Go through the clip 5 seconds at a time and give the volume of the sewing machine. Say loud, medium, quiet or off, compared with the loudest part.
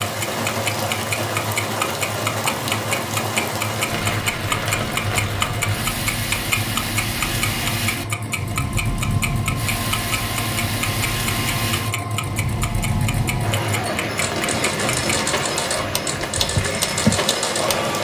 medium, medium, loud, loud.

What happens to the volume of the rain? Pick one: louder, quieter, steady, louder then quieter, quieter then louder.
steady.